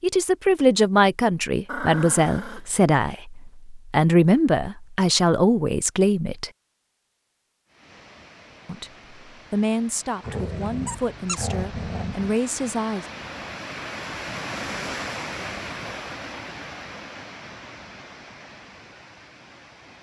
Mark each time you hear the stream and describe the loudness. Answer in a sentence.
You can hear the stream from 7.7 to 19.9 s, getting louder then quieter.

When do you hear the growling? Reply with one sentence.
You can hear the growling from 1.6 to 2.7 s and from 10.2 to 12.3 s.